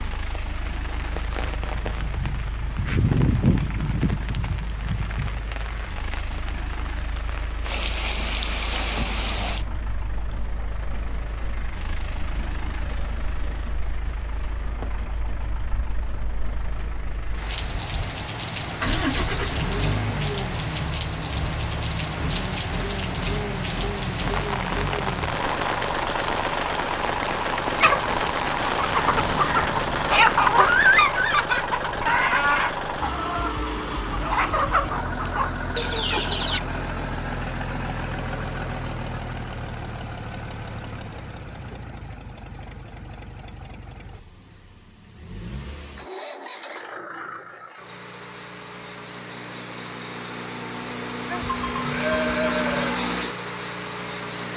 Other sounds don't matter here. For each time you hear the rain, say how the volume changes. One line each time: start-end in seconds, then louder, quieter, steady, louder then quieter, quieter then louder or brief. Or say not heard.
0.0-31.1 quieter then louder.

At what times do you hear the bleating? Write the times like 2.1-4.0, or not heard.
51.2-53.0.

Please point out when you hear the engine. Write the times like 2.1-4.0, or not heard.
0.0-54.5.